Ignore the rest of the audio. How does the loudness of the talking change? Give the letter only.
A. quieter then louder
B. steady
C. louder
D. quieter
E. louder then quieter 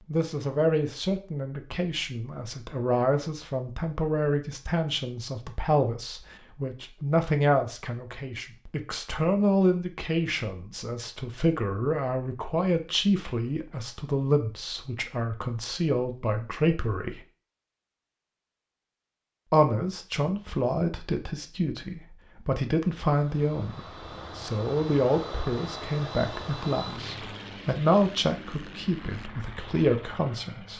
B.